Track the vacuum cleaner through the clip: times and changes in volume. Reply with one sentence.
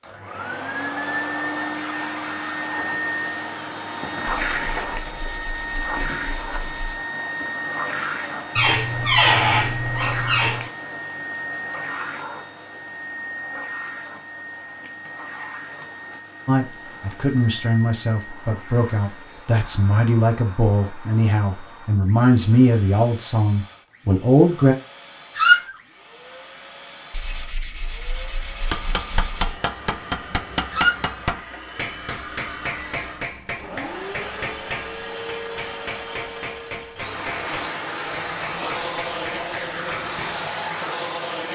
You can hear the vacuum cleaner from 0.0 to 41.4 s, getting quieter then louder.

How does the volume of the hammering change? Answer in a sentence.
The loudness of the hammering goes down.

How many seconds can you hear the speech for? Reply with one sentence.
The speech can be heard for 8 seconds in total.